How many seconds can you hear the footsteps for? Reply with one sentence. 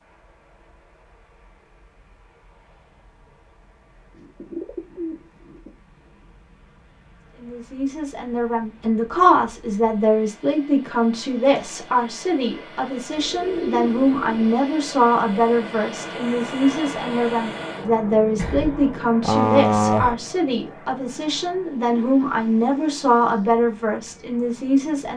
The footsteps can't be heard in this clip.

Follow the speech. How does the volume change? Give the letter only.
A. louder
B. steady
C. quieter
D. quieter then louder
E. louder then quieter
B.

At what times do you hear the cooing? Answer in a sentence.
You can hear the cooing from 4.2 to 5.7 s, from 13.2 to 14.5 s and from 18.4 to 20.1 s.